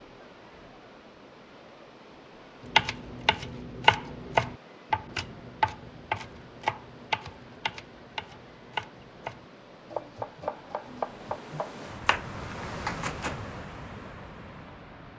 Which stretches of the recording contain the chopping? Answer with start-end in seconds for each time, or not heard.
2.6-13.3.